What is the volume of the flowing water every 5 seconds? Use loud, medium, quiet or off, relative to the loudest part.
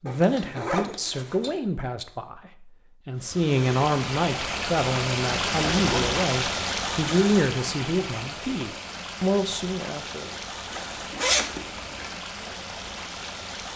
loud, loud, medium.